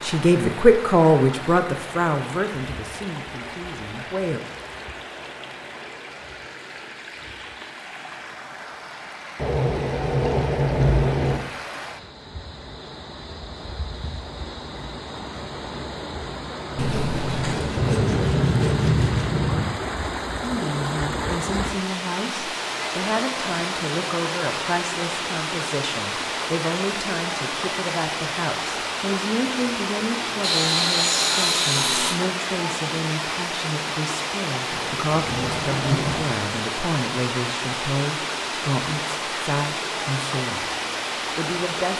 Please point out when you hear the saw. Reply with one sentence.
You can hear the saw from 16.8 to 19.3 s and from 30.4 to 32.1 s.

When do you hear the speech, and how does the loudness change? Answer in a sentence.
You can hear the speech from 0.0 to 4.4 s, getting quieter; from 20.4 to 40.7 s, at a steady volume; and briefly from 41.4 to 41.9 s.